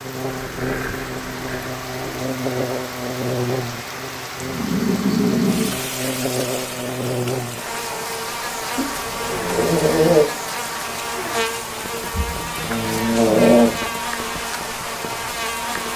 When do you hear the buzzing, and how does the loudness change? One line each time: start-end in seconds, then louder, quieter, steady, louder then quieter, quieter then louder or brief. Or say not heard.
0.0-15.9 steady.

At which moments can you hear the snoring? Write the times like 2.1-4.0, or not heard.
0.3-2.2, 4.4-5.8, 8.8-10.2, 12.1-13.7.